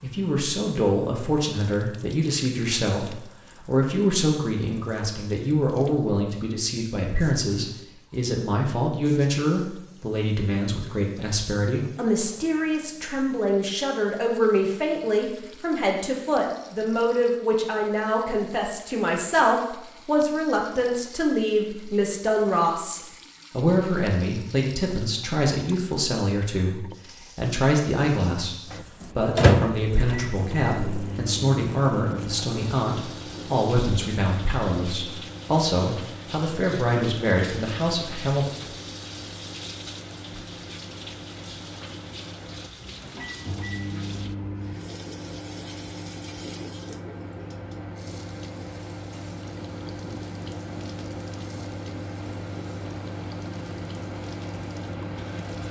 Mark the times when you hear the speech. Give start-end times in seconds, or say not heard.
0.0-38.5.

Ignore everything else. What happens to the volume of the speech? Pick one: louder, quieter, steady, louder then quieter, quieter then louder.
steady.